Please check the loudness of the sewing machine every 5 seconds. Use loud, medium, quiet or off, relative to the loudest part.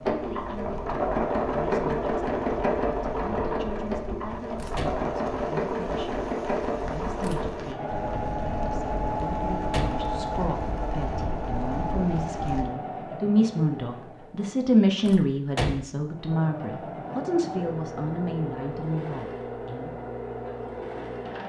loud, loud, medium, medium, medium.